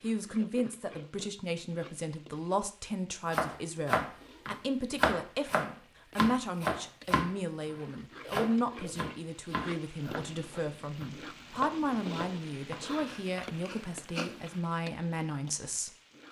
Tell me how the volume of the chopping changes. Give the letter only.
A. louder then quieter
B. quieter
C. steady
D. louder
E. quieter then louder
B.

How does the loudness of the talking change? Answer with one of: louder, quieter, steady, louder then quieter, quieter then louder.
steady.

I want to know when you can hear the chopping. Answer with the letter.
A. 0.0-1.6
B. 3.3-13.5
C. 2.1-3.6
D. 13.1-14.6
B.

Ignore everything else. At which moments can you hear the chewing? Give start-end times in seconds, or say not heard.
13.1-14.6.